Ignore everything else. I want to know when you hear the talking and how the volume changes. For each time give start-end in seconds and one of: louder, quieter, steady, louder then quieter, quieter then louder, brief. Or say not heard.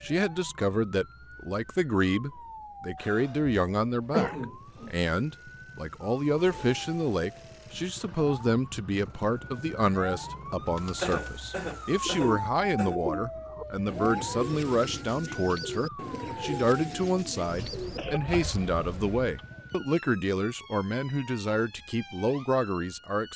0.0-23.3 steady.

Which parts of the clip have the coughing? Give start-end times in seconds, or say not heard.
3.0-5.0, 11.0-13.0, 17.4-19.2.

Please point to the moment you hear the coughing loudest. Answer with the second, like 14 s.
4 s.